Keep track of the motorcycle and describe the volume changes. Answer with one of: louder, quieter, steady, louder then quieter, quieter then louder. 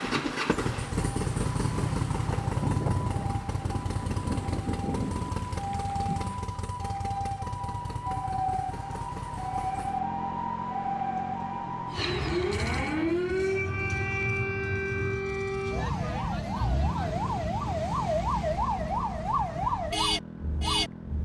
quieter.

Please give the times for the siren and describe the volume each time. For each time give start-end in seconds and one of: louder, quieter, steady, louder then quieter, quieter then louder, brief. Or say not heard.
0.0-21.1 louder.